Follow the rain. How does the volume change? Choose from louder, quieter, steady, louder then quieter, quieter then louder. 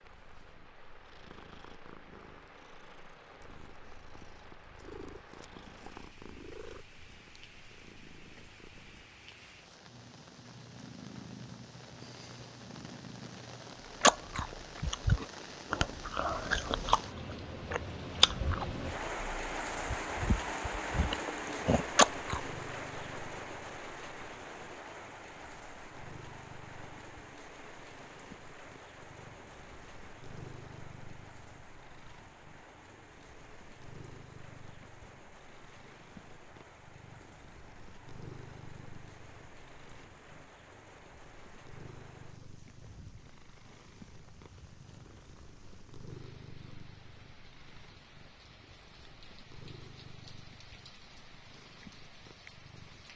louder then quieter.